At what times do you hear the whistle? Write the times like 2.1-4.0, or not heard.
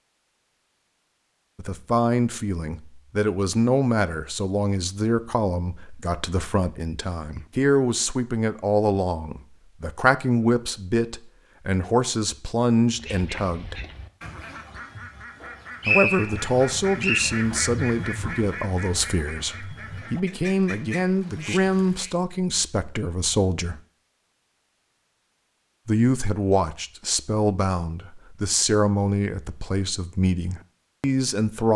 15.4-17.3.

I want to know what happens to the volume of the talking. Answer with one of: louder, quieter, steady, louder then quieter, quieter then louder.
steady.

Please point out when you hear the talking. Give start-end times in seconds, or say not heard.
1.6-13.8, 15.8-23.8, 25.9-31.7.